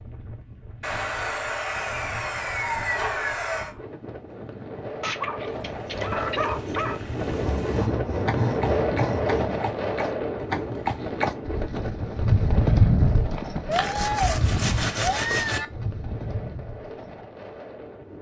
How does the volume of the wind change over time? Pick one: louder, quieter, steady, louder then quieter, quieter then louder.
louder then quieter.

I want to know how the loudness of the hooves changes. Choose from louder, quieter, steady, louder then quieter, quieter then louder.
louder then quieter.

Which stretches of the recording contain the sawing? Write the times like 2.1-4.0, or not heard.
0.8-3.8, 7.2-9.6, 13.7-15.6.